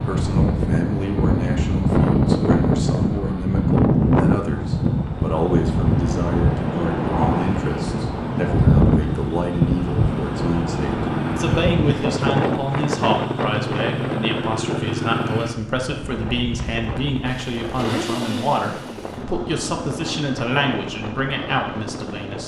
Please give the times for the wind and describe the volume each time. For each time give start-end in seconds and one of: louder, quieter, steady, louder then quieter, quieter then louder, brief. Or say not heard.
0.0-22.4 quieter.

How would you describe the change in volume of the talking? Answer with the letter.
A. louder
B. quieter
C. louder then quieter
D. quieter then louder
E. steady
E.